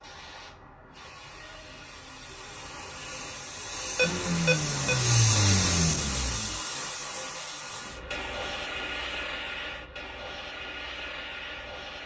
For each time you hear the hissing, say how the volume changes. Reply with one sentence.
You can hear the hissing from 0.0 to 12.0 s, getting louder then quieter.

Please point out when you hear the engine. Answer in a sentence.
The engine can be heard from 4.0 to 6.6 s.